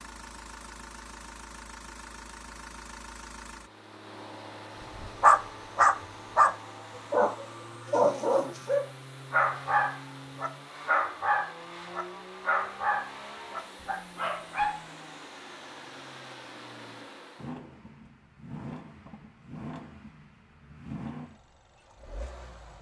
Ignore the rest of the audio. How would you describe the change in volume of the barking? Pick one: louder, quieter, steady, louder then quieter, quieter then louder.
quieter.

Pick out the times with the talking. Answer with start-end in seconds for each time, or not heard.
not heard.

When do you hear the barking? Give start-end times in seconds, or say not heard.
5.0-14.8.